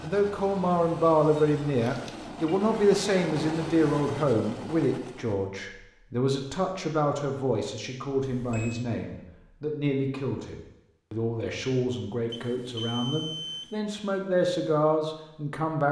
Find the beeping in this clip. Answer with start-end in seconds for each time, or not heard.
1.8-2.5, 8.2-8.8, 12.3-13.7.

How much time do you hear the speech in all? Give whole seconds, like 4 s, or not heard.
16 s.